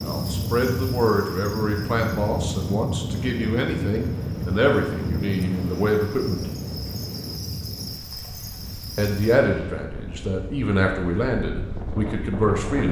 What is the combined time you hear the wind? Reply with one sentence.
You can hear the wind for 13 seconds altogether.